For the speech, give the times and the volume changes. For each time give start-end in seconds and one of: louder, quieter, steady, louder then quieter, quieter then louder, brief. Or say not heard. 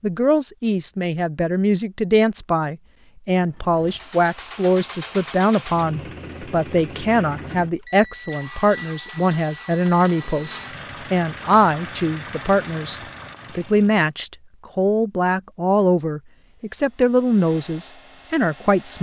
0.0-18.9 steady.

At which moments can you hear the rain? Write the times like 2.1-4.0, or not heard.
not heard.